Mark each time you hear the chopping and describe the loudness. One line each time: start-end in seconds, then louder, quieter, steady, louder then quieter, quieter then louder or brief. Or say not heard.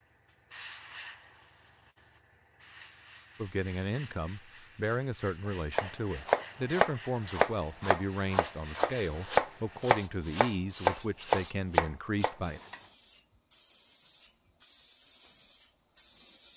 5.8-12.8 steady.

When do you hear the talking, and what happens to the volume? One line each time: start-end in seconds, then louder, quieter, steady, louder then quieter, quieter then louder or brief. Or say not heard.
3.4-12.6 steady.